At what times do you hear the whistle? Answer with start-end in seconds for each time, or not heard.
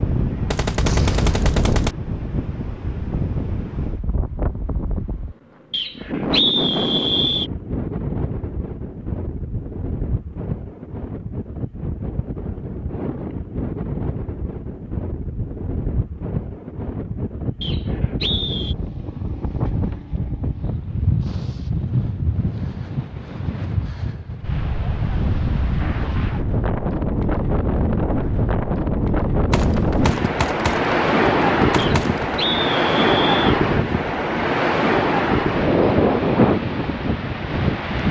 5.7-7.5, 17.6-18.8, 31.8-33.4.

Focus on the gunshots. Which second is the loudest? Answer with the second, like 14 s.
1 s.